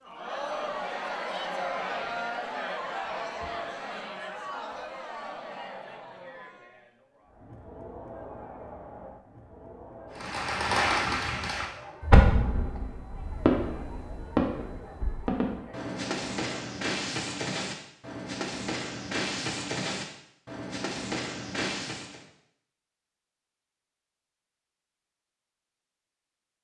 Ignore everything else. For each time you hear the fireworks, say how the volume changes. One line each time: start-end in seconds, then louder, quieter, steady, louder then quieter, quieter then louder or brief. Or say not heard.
10.2-22.2 quieter.